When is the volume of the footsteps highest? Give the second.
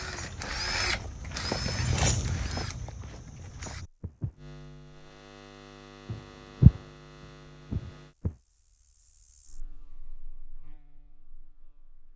7 s.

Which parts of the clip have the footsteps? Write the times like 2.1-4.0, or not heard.
0.0-4.4, 6.0-8.3.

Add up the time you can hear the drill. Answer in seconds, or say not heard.
4 s.